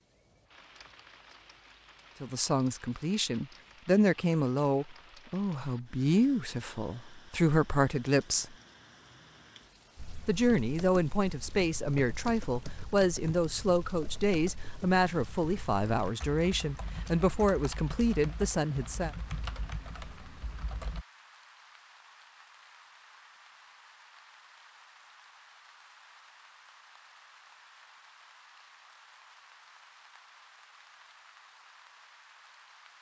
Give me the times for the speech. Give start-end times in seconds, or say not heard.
2.2-8.6, 10.2-19.1.